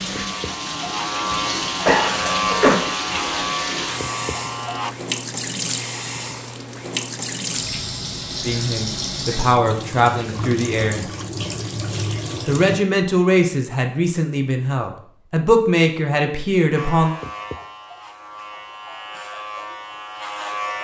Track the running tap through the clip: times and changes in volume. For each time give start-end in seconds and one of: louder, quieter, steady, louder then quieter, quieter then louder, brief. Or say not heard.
0.0-12.8 steady.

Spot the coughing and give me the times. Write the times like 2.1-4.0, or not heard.
1.9-2.8.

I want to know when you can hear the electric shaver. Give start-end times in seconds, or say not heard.
0.0-5.0, 16.8-20.7.